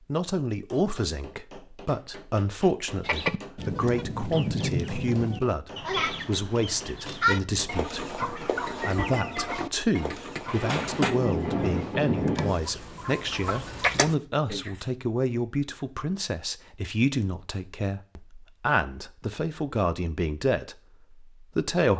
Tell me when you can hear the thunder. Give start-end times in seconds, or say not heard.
10.5-12.5.